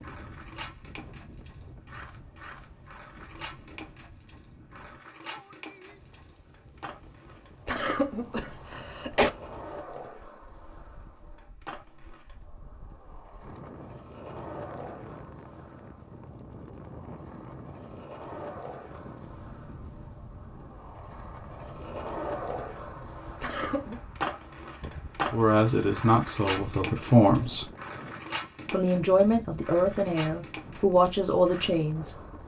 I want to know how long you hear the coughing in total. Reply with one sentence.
You can hear the coughing for 2 seconds altogether.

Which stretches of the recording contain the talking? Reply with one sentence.
You can hear the talking from 25.3 to 27.6 s and from 28.7 to 32.1 s.